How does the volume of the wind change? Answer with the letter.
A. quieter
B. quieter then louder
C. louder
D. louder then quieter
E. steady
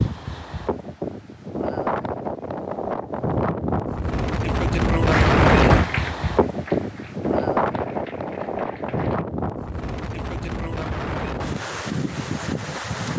D.